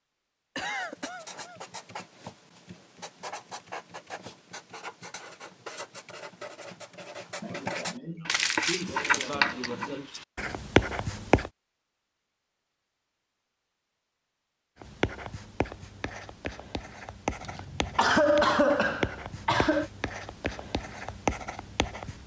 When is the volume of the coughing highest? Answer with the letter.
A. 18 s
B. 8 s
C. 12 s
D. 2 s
A.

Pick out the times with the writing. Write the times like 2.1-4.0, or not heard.
0.8-11.5, 14.8-22.2.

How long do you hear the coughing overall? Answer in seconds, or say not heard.
6 s.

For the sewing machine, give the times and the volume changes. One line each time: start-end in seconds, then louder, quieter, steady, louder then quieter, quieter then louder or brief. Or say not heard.
not heard.